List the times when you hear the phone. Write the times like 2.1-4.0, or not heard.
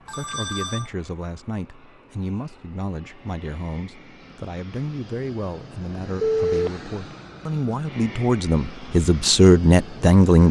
0.1-0.9, 6.2-6.7.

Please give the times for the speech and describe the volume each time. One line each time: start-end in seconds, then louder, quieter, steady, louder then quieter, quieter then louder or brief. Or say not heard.
0.1-10.4 louder.